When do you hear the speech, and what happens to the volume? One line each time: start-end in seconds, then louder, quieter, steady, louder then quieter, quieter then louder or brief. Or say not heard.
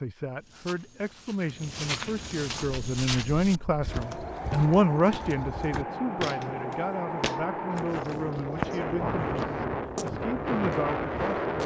0.0-11.6 louder then quieter.